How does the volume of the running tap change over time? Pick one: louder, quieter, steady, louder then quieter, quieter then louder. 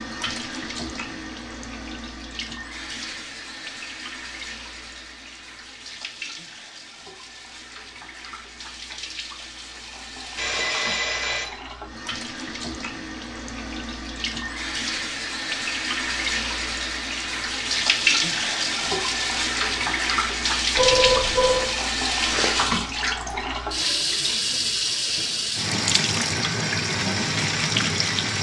louder.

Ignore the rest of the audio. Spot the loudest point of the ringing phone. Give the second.
21 s.